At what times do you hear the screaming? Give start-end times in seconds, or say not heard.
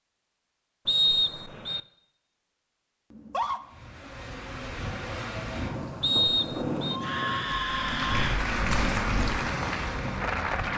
3.1-3.6, 6.9-8.4.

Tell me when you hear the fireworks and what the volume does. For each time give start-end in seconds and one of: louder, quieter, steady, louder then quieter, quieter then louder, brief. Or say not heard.
not heard.